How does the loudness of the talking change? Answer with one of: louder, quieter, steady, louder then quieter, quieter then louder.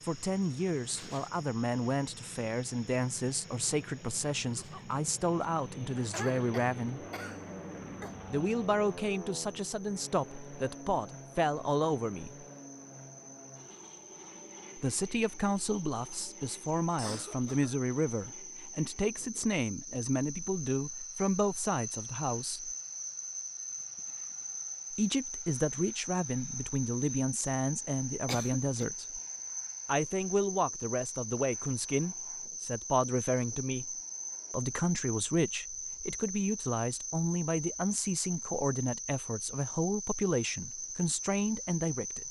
steady.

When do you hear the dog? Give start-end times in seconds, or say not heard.
not heard.